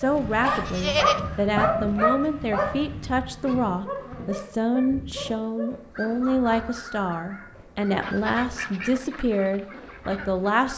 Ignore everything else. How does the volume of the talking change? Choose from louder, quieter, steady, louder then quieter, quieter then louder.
steady.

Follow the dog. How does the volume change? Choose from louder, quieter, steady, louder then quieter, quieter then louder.
quieter.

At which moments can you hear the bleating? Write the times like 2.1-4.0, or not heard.
0.5-1.4.